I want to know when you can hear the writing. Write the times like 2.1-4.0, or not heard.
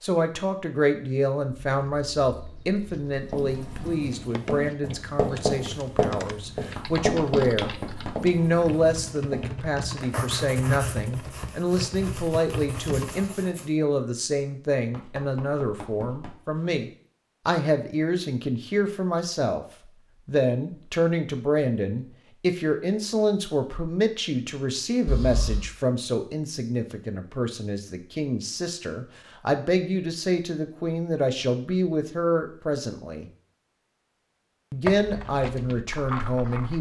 3.1-13.7.